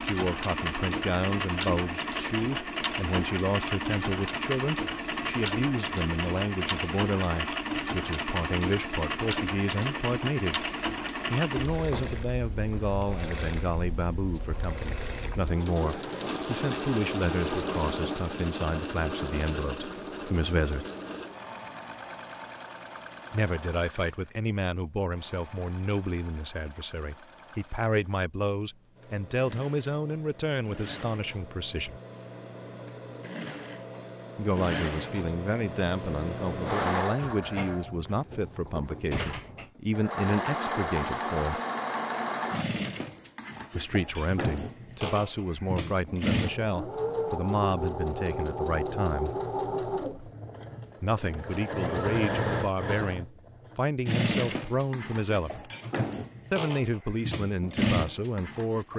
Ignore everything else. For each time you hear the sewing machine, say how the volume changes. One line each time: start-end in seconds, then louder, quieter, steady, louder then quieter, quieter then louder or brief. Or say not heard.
0.0-58.9 quieter then louder.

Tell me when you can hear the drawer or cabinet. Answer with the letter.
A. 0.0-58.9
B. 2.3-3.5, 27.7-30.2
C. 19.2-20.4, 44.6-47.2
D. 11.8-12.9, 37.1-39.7
D.